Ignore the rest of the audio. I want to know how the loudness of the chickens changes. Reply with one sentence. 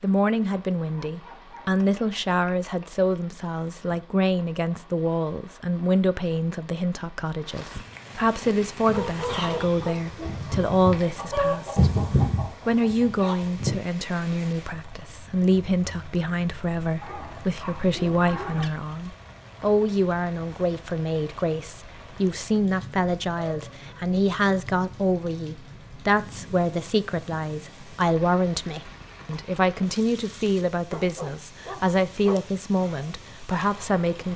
The loudness of the chickens goes up, then down.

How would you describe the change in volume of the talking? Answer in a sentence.
The volume of the talking stays about the same.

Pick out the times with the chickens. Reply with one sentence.
You can hear the chickens from 8.8 to 13.7 s.